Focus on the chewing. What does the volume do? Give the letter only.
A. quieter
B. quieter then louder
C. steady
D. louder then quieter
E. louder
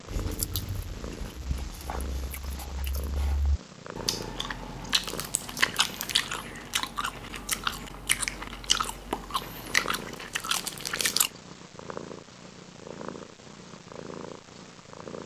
E.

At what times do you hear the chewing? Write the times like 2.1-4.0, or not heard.
0.1-11.3.